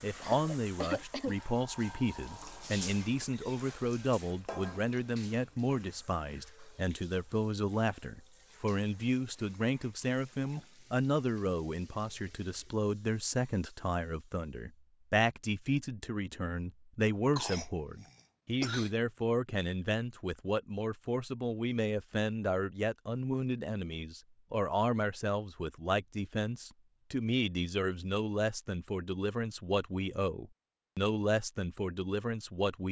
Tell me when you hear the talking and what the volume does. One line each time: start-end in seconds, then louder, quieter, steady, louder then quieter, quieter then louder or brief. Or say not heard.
0.0-32.8 steady.